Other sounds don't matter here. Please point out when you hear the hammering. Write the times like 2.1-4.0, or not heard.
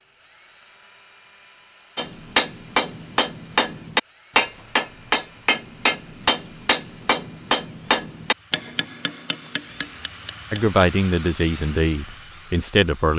1.9-10.8.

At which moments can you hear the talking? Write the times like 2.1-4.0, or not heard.
10.5-13.1.